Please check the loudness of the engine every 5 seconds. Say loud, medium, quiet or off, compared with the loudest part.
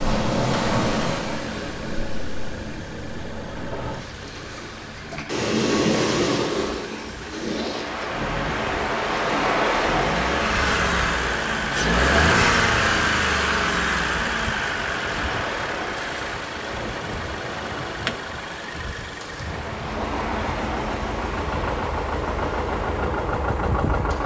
quiet, quiet, loud, medium, medium.